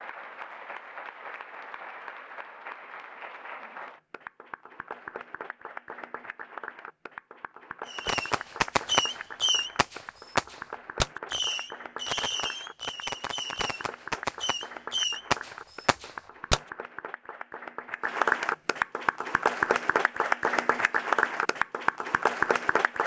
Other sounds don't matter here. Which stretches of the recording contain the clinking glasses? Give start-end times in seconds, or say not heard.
not heard.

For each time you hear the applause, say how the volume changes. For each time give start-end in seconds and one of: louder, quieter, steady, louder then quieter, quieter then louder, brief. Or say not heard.
0.0-23.0 louder.